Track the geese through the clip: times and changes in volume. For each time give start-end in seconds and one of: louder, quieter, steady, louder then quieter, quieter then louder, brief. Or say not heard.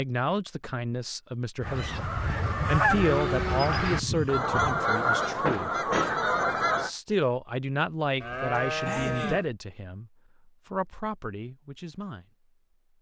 1.6-6.9 steady.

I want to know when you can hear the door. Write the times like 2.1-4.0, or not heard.
5.5-6.5.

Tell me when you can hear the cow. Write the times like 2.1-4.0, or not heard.
2.9-4.8, 8.2-9.4.